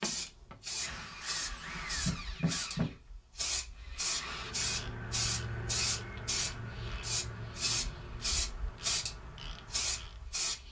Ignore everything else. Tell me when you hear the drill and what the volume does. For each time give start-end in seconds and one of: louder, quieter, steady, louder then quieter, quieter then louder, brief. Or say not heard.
0.0-4.5 louder then quieter.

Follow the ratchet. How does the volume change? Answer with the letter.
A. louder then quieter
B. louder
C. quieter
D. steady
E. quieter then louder
C.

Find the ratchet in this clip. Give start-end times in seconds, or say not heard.
4.2-10.3.